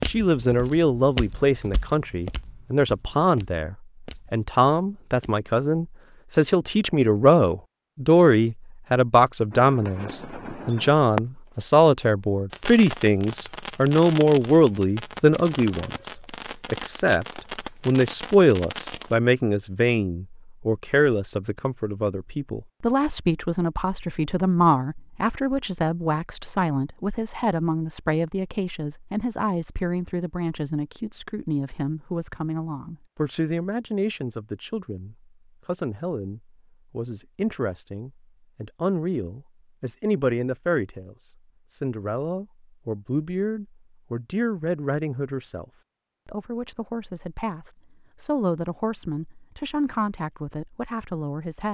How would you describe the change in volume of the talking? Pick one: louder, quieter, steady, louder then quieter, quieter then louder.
quieter.